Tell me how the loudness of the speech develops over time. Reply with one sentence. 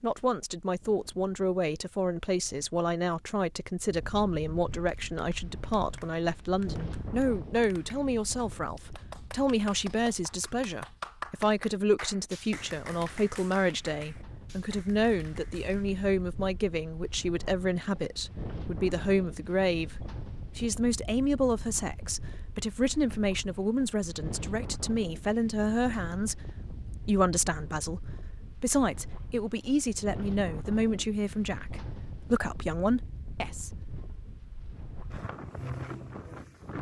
The volume of the speech stays about the same.